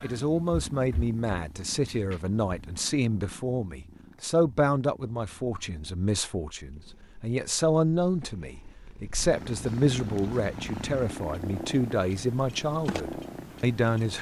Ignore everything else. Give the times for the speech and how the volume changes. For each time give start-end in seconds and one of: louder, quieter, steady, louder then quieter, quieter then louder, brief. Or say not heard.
0.0-14.1 steady.